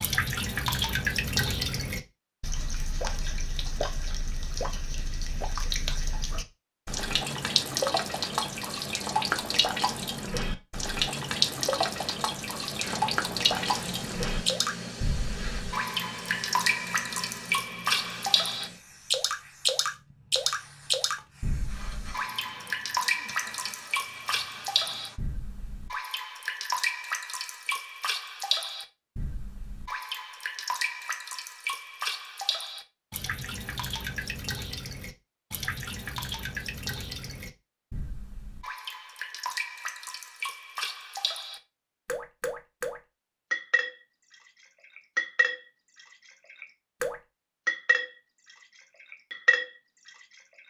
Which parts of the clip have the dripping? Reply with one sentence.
The dripping can be heard from 0.0 to 44.0 s and from 44.6 to 50.6 s.